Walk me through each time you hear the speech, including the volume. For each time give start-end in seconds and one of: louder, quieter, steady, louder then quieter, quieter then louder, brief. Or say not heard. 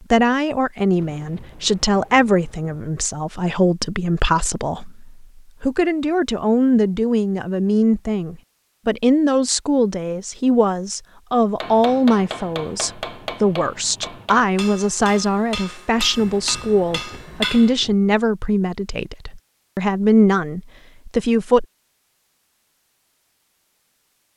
0.0-21.6 steady.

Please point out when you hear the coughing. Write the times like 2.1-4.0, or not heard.
not heard.